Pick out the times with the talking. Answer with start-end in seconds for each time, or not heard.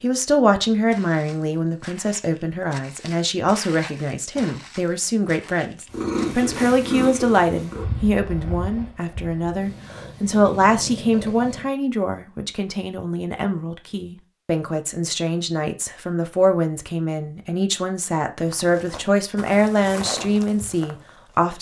0.0-21.5.